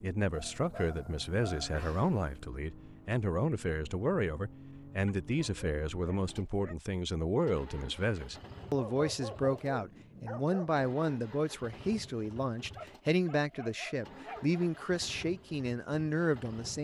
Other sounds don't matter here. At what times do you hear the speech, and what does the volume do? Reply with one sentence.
The speech can be heard from 0.0 to 16.8 s, at a steady volume.